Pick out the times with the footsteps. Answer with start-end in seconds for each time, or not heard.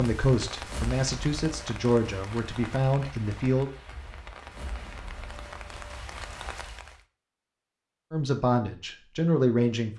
not heard.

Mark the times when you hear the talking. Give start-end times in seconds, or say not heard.
0.0-3.7, 8.1-9.9.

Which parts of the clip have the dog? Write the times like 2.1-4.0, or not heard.
not heard.